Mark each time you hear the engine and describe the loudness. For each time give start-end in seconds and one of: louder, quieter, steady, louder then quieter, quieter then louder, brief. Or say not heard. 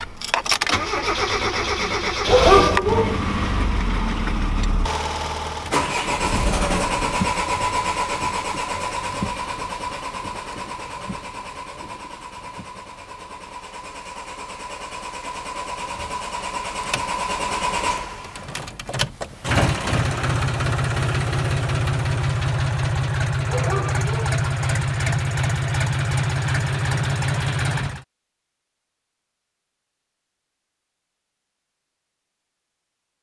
0.0-28.1 quieter then louder.